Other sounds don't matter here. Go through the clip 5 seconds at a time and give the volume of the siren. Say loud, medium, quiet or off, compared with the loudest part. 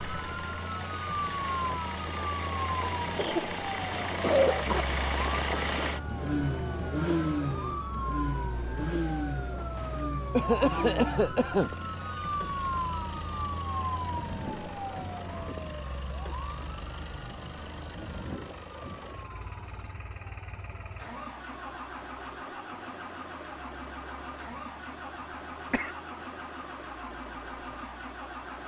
loud, loud, loud, medium, quiet, quiet.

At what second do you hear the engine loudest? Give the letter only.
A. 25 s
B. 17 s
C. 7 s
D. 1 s
C.